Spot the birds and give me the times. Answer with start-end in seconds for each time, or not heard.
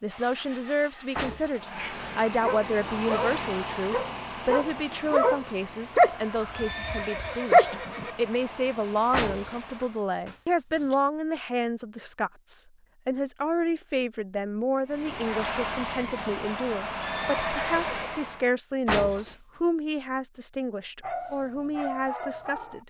not heard.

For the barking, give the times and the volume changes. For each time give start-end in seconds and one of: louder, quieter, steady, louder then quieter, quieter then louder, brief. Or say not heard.
2.2-7.8 louder then quieter
21.0-22.8 brief.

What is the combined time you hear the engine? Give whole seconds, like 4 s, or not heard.
14 s.